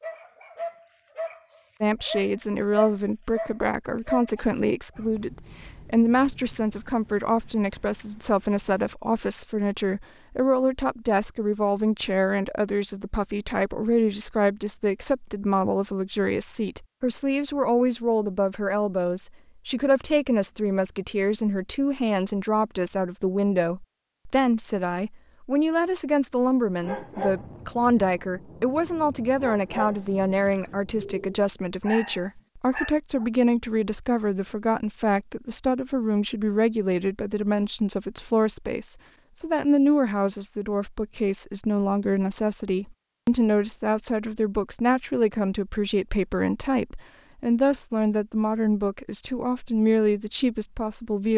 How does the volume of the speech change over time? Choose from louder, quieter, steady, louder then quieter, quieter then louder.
steady.